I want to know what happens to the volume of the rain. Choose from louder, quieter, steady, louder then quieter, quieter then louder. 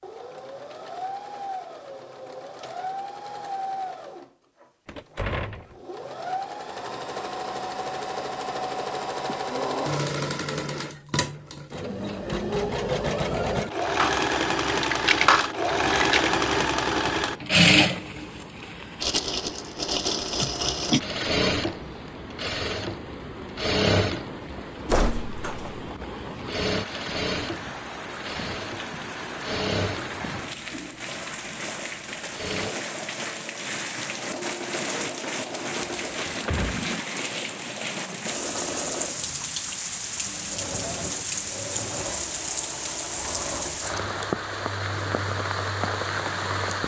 louder.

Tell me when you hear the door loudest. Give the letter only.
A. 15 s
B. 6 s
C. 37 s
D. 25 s
D.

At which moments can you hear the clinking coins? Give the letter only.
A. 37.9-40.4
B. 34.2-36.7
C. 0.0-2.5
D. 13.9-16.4
D.